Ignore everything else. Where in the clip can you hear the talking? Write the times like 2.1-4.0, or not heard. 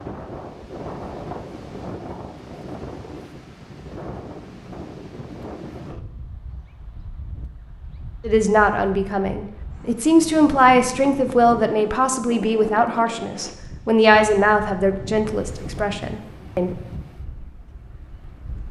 8.2-16.8.